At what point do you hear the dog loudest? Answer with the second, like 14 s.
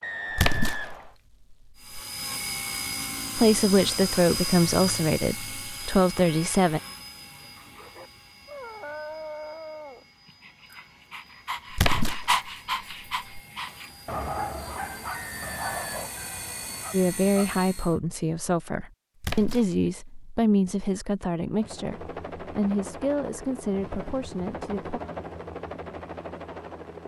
12 s.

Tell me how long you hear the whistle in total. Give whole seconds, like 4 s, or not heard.
3 s.